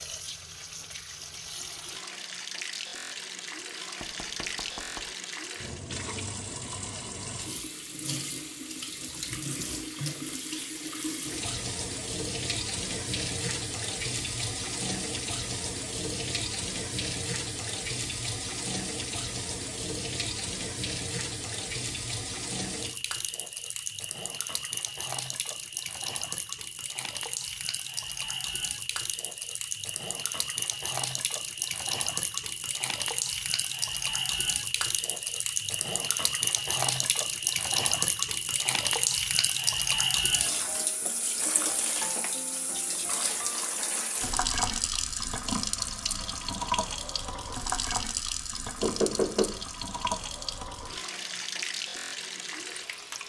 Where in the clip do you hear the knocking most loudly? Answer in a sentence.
The volume of the knocking peaks at 49 seconds.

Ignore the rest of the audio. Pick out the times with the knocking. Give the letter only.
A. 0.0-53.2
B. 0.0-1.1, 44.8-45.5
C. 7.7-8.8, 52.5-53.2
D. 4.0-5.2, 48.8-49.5
D.